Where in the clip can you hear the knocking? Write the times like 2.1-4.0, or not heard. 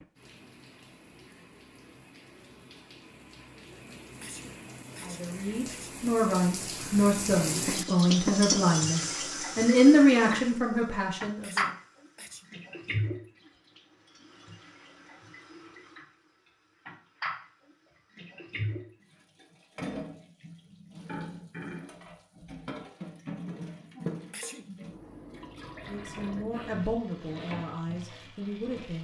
7.7-9.2.